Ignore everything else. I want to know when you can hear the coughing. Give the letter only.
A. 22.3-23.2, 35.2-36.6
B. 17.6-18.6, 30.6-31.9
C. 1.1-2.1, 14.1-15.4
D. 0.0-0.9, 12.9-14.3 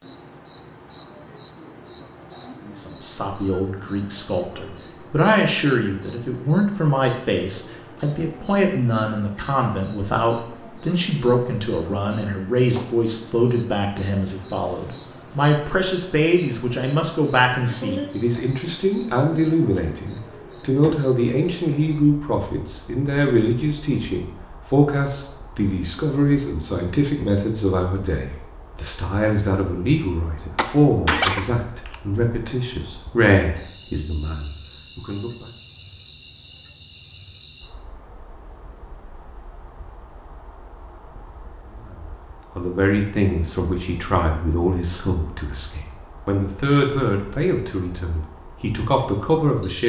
B.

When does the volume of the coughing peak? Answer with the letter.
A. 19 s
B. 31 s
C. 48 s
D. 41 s
B.